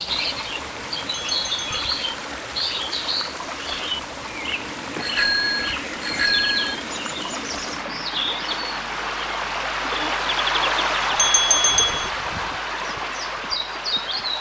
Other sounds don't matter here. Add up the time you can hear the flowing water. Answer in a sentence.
You can hear the flowing water for 14 seconds altogether.